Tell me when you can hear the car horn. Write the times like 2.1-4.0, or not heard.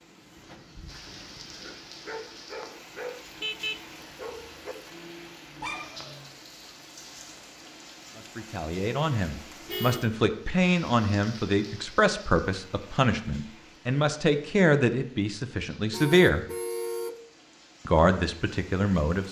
3.4-4.2, 9.7-10.2, 15.9-17.1.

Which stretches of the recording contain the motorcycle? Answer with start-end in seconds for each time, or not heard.
not heard.